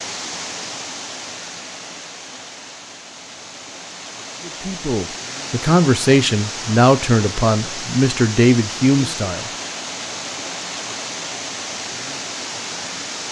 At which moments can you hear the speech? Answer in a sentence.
The speech can be heard from 4.5 to 9.5 s.